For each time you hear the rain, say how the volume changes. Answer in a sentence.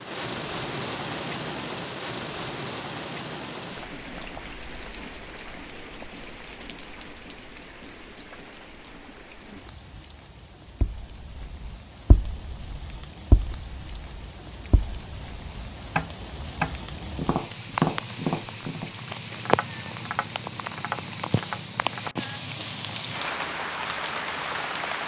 You can hear the rain from 0.0 to 25.0 s, getting quieter then louder.